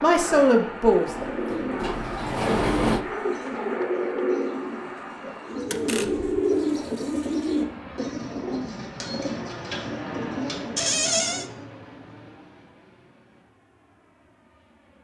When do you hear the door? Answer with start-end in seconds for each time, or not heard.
1.1-3.0, 5.7-6.3, 10.8-11.5.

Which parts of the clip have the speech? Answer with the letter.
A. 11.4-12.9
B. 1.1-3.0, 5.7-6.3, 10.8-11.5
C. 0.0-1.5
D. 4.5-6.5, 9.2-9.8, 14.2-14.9
C.